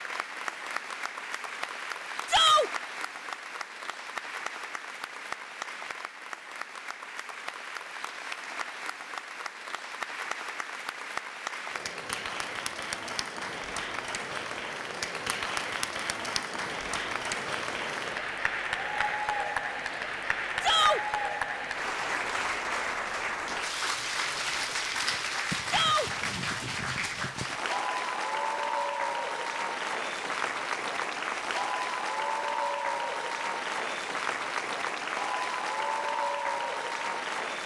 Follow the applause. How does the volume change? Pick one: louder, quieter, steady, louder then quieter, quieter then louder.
louder.